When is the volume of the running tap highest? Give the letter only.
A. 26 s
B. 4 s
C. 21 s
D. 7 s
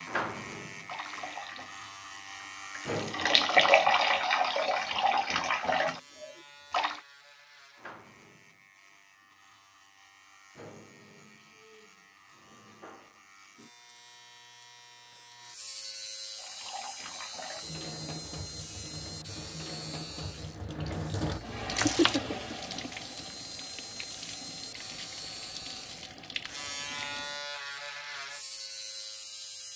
B.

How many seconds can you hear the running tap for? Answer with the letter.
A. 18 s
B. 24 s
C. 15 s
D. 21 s
A.